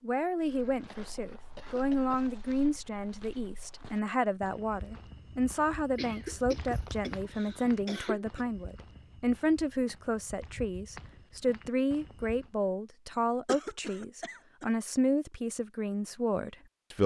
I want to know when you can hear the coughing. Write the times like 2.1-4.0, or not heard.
0.8-2.2, 6.0-8.4, 13.4-14.7.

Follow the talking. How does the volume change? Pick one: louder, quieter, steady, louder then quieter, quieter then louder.
steady.